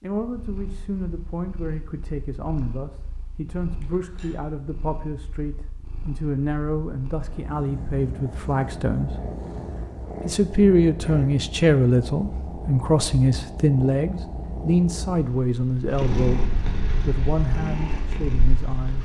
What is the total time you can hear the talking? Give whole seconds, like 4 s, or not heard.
18 s.